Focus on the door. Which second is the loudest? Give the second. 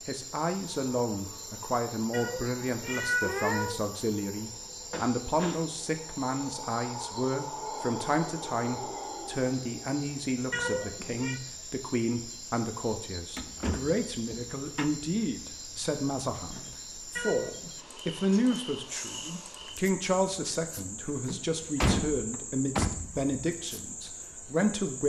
22 s.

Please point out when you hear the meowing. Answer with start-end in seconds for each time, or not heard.
2.1-3.9, 10.5-11.4, 17.1-17.7.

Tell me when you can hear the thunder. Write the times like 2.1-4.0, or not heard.
not heard.